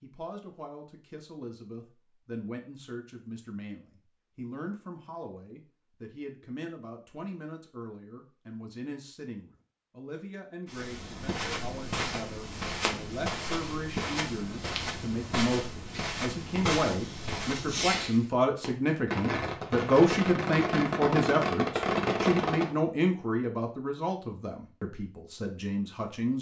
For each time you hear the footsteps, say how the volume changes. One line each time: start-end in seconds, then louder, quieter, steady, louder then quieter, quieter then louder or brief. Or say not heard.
10.7-18.1 steady.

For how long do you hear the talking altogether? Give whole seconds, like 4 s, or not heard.
26 s.